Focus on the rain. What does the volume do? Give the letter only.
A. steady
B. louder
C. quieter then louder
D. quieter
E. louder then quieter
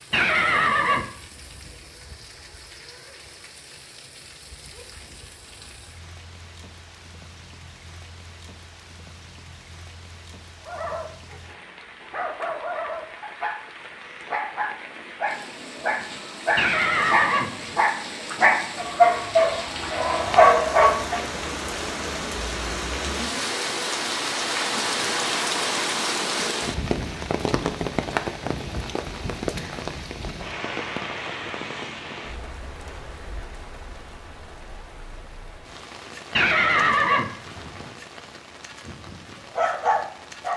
E.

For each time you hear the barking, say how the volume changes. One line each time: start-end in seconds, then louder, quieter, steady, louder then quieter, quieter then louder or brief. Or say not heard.
10.7-21.2 louder
38.9-40.5 brief.